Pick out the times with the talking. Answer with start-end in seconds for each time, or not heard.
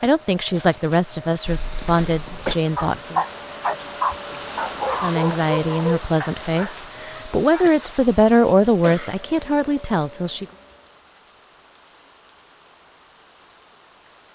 0.0-3.2, 5.0-10.4.